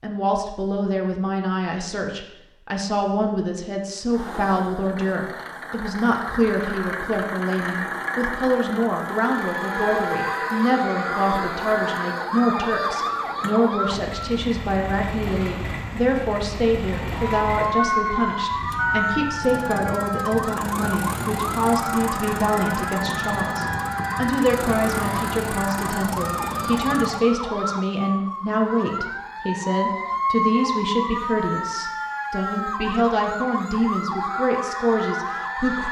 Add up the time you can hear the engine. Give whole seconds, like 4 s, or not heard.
23 s.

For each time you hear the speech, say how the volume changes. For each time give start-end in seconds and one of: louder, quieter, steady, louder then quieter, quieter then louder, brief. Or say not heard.
0.0-35.8 steady.